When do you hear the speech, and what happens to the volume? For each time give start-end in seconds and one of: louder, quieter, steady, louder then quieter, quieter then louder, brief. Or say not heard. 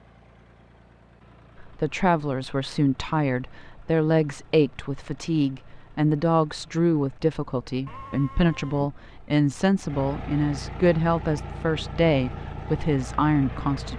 1.6-13.9 steady.